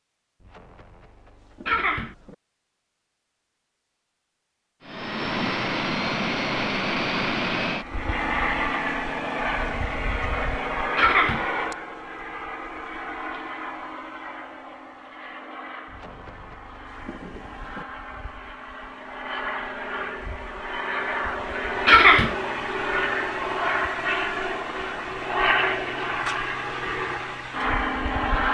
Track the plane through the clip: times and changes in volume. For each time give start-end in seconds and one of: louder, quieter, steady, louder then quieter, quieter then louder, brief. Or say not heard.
4.8-28.5 quieter then louder.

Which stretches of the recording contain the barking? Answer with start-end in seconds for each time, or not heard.
not heard.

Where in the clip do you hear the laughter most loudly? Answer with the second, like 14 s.
22 s.